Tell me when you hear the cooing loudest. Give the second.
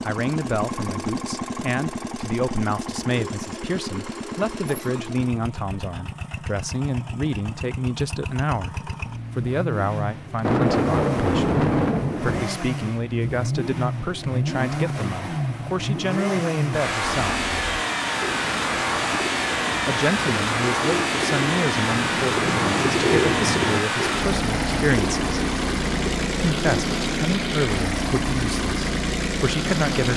23 s.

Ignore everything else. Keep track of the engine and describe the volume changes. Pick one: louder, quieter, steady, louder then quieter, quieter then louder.
louder.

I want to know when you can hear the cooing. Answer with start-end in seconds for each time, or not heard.
17.0-26.9.